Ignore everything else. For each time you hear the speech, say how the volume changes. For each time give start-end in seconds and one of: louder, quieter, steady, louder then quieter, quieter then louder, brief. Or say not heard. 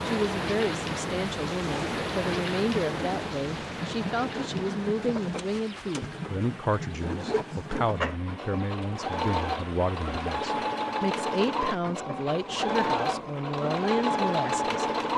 0.1-14.8 steady.